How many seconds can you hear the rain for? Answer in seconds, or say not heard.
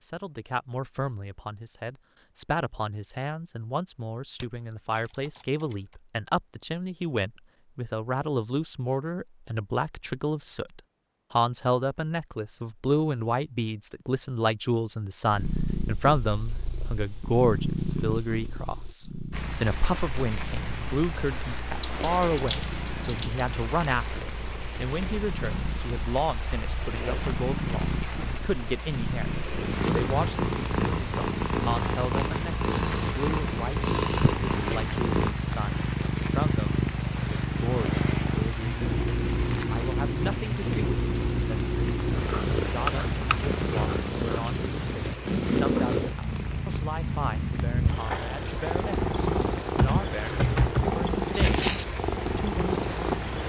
34 s.